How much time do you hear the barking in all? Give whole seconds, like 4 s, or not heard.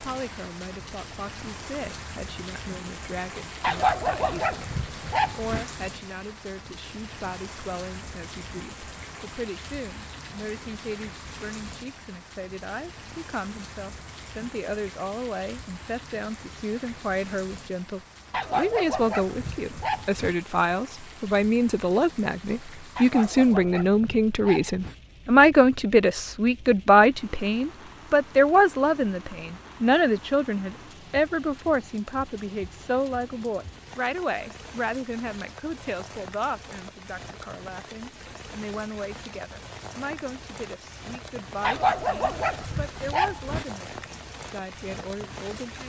8 s.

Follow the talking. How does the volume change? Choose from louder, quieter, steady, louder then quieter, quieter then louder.
louder then quieter.